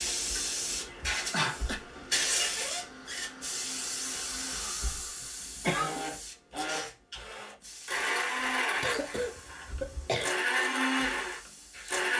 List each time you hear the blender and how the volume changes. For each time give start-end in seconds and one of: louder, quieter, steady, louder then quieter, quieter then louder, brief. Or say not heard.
0.0-12.1 louder.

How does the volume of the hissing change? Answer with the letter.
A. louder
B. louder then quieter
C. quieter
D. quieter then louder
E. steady
C.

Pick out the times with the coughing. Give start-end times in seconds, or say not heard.
0.8-1.9, 5.6-6.0, 8.8-10.3.